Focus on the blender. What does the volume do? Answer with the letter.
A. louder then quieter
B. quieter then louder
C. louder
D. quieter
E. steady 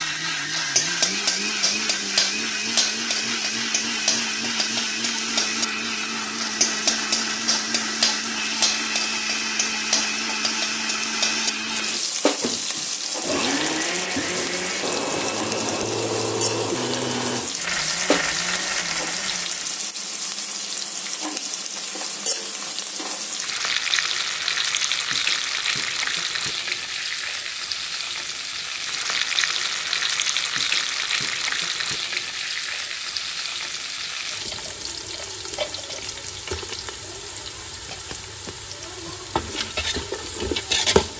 E.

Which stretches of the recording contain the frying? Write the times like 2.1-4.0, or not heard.
0.0-41.1.